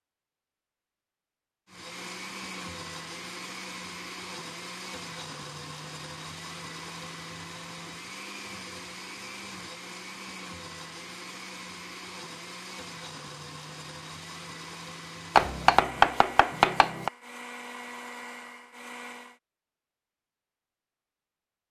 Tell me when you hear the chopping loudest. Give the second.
16 s.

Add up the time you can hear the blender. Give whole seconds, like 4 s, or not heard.
18 s.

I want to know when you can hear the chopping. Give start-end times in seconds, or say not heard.
15.3-17.1.